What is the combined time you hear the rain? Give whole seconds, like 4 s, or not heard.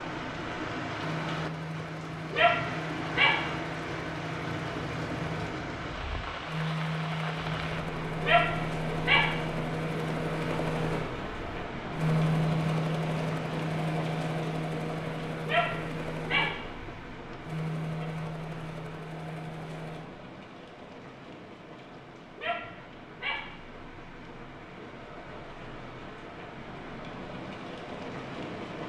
29 s.